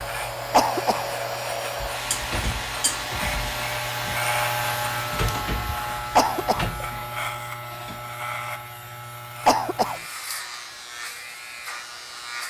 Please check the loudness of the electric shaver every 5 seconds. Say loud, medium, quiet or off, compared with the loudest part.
loud, loud, medium.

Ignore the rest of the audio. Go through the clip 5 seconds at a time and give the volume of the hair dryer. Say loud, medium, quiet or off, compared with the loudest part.
loud, medium, quiet.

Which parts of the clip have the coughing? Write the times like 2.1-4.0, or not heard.
0.5-1.1, 6.2-6.7, 9.4-10.0.